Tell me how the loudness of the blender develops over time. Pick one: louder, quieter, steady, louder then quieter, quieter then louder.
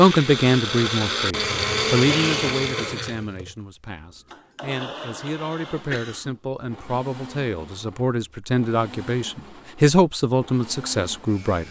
quieter.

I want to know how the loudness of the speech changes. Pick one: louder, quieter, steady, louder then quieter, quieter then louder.
quieter then louder.